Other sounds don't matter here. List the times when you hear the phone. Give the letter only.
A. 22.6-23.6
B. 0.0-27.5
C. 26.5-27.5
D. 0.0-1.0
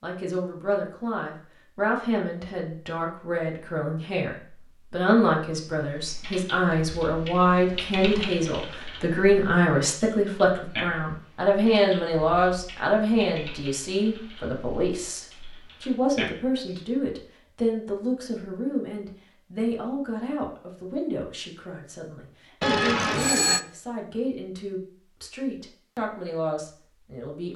A.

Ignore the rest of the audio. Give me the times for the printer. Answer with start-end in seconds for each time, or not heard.
not heard.